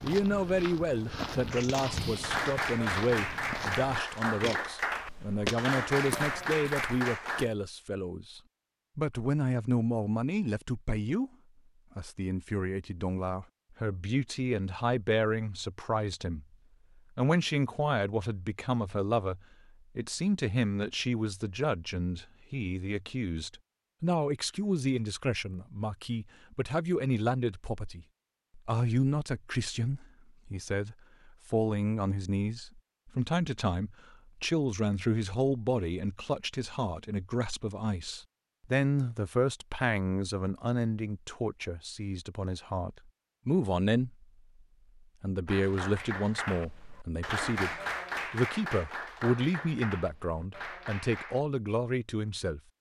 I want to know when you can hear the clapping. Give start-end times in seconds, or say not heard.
1.5-7.5, 45.5-51.5.